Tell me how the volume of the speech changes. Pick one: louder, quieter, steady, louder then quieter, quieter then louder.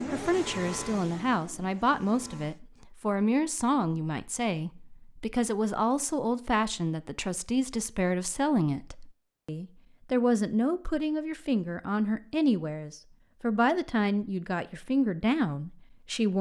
steady.